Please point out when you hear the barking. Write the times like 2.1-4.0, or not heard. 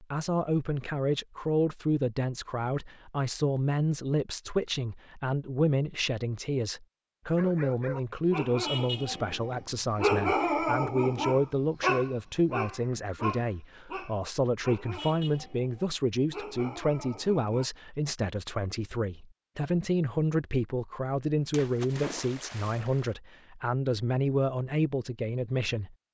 7.3-17.7.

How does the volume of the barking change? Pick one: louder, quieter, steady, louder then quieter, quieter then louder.
louder then quieter.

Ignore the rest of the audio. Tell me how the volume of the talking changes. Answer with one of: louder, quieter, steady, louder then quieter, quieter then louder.
steady.